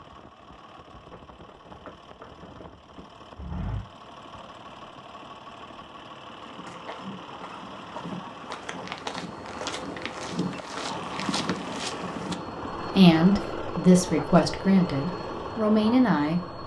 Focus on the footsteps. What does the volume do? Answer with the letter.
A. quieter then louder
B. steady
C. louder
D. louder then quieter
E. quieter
C.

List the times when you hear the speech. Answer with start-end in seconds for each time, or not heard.
12.9-16.4.